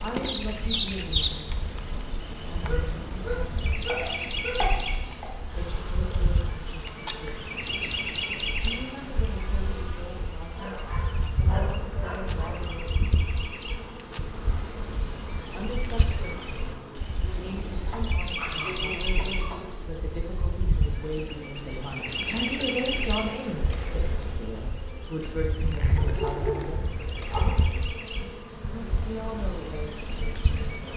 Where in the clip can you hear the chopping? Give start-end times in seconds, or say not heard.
3.5-5.3.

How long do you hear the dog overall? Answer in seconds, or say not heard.
8 s.